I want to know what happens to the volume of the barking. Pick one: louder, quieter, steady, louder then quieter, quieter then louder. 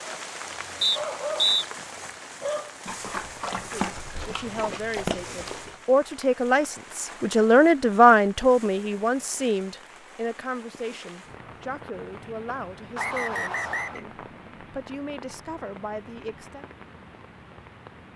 steady.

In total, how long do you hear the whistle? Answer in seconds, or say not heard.
2 s.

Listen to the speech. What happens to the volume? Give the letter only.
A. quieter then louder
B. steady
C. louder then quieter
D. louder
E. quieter
C.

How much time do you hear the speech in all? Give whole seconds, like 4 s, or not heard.
13 s.